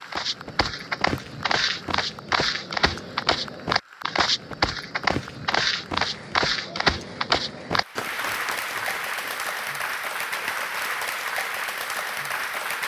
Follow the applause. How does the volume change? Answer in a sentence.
The loudness of the applause goes up.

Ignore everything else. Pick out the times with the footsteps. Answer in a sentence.
You can hear the footsteps from 0.0 to 9.5 s.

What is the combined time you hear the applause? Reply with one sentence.
You can hear the applause for 13 seconds altogether.